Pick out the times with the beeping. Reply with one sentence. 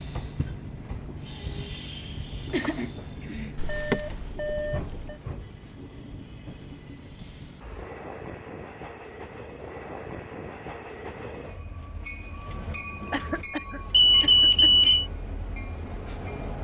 The beeping can be heard from 3.5 to 5.2 s and from 13.9 to 15.1 s.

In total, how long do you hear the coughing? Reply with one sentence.
You can hear the coughing for 3 seconds altogether.